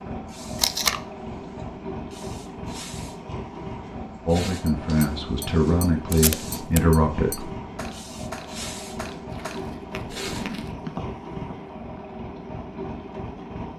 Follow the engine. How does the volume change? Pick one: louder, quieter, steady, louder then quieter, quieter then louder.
steady.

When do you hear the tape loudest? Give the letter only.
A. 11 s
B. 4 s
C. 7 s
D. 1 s
D.